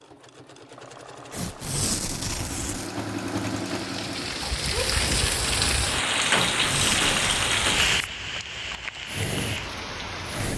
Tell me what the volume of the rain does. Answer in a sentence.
The volume of the rain goes up, then down.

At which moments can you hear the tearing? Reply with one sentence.
The tearing can be heard from 1.3 to 2.9 s and from 6.3 to 8.1 s.